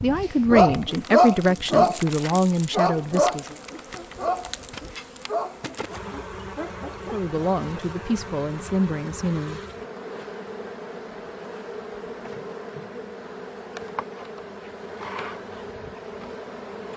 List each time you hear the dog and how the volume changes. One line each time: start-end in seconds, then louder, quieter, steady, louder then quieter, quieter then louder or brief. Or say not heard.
0.5-7.8 quieter.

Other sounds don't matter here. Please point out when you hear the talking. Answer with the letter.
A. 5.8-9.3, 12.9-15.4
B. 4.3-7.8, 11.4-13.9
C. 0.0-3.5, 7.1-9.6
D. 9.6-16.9
C.